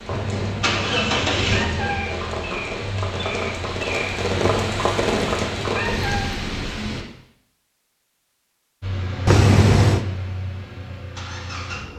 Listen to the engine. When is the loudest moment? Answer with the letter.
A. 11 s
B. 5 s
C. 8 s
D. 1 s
D.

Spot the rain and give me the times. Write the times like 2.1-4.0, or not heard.
0.0-7.0.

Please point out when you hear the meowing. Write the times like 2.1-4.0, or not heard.
0.1-2.1, 4.3-6.3, 9.2-10.1.